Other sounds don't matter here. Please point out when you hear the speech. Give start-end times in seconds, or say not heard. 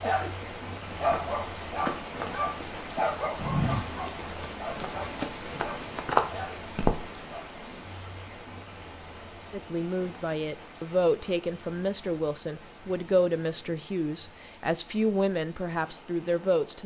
9.5-16.8.